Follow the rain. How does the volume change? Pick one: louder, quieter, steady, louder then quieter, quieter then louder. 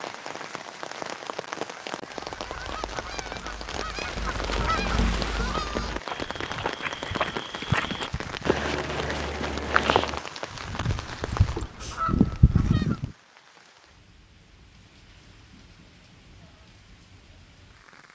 quieter.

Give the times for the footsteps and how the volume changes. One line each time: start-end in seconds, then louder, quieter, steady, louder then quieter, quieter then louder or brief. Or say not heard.
4.2-10.2 louder.